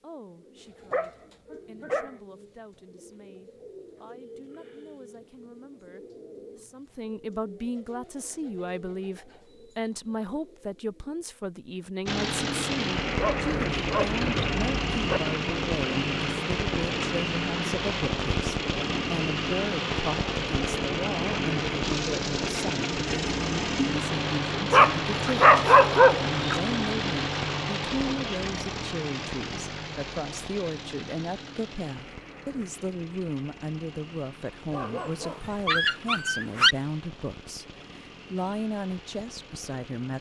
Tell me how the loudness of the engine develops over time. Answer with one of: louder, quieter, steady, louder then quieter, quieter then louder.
quieter.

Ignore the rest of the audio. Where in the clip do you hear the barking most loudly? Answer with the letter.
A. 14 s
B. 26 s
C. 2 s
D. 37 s
B.